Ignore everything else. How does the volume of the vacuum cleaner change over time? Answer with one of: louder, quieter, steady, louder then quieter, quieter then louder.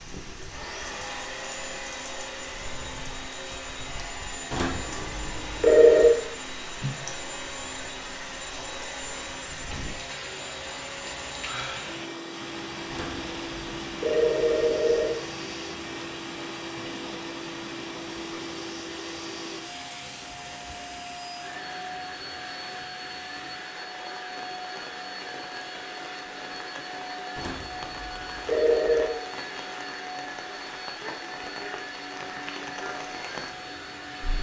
steady.